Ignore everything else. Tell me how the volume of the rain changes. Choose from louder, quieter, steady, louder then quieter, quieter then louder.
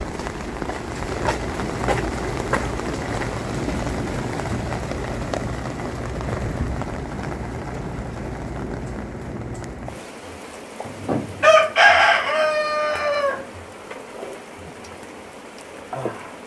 quieter.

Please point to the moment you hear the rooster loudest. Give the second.
12 s.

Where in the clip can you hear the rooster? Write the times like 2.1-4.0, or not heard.
10.8-13.4.